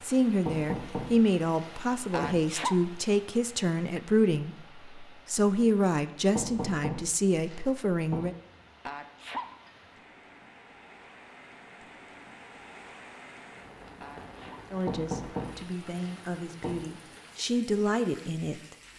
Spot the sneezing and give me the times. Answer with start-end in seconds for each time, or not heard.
2.1-2.8, 8.8-9.4, 14.0-14.6.